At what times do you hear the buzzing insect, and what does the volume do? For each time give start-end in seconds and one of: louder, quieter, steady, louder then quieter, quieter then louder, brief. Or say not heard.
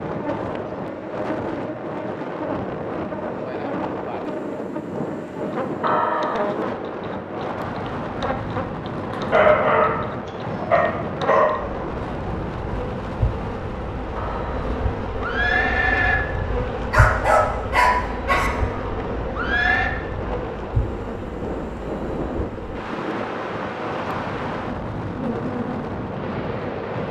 0.0-27.0 steady.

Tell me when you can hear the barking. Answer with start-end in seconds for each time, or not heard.
8.9-10.0, 10.7-11.6, 16.9-18.5.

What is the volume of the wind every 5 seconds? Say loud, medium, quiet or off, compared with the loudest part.
loud, loud, loud, medium, loud, loud.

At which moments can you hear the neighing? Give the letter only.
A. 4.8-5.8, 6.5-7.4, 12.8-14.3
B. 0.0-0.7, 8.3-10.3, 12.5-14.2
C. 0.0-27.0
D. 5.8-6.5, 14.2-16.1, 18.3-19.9
D.